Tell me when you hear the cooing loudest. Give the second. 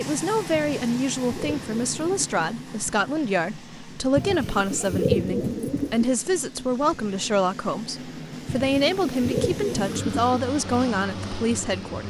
5 s.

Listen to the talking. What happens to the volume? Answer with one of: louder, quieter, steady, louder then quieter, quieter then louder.
steady.